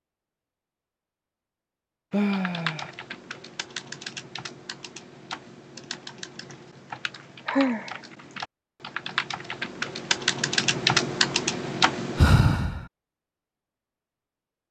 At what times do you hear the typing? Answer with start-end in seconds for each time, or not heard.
2.1-12.2.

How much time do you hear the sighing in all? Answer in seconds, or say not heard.
2 s.